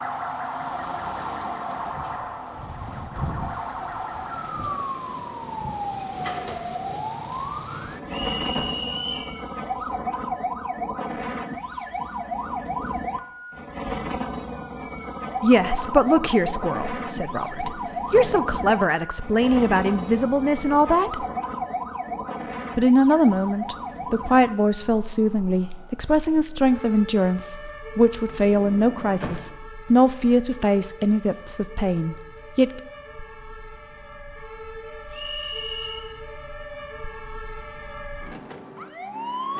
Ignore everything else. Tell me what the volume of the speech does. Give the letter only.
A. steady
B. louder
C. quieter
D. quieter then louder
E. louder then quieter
A.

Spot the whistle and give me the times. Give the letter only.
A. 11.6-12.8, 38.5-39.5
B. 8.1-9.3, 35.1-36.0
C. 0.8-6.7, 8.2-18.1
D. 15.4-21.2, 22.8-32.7
B.